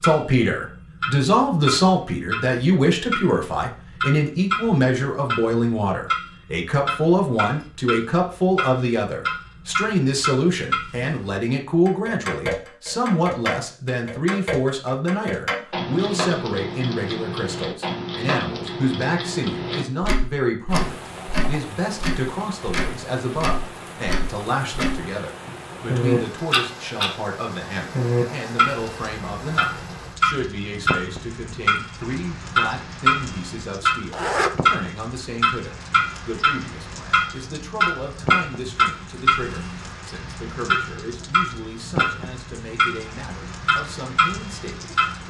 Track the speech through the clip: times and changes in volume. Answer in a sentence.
The speech can be heard from 0.0 to 45.2 s, getting quieter.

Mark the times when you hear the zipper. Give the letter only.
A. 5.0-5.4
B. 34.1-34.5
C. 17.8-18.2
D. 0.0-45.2
B.